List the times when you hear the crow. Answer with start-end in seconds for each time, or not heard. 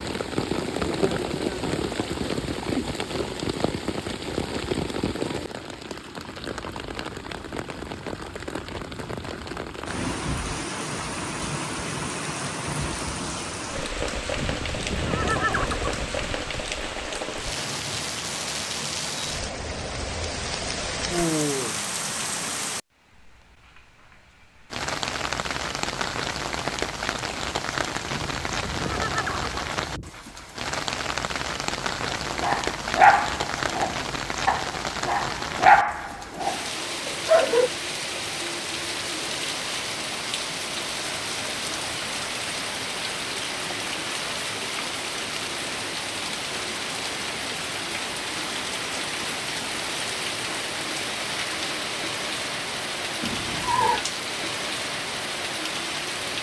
not heard.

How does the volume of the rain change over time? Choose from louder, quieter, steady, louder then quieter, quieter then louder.
steady.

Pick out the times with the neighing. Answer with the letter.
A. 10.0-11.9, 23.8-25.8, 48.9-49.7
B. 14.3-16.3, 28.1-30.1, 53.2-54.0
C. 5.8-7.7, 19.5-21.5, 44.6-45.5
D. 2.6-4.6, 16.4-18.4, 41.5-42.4
B.